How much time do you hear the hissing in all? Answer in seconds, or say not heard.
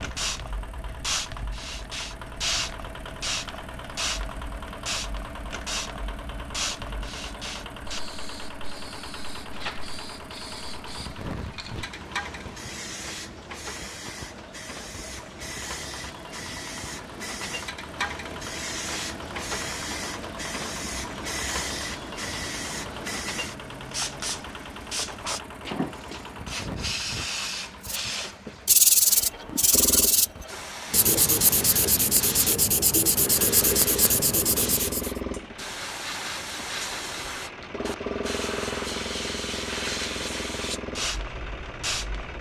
42 s.